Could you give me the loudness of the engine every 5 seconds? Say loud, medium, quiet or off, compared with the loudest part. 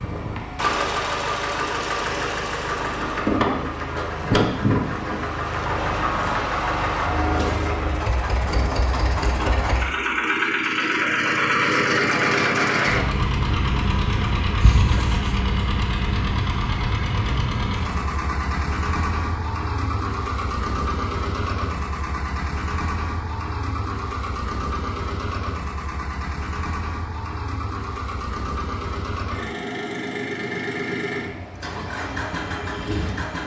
loud, loud, loud, medium, medium, medium, medium.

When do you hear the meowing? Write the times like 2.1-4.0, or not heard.
14.6-15.3.